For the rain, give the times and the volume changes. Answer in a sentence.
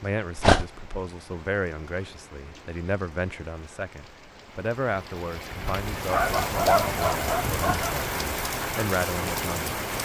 You can hear the rain from 0.0 to 10.0 s, getting louder.